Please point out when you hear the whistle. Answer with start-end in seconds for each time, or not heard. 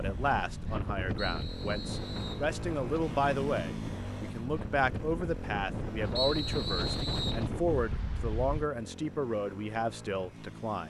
1.1-2.5, 6.2-7.5.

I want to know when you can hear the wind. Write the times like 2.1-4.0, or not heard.
0.0-8.7.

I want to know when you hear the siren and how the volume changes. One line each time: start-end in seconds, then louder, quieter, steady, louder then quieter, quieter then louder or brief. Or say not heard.
not heard.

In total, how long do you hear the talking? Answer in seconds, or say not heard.
11 s.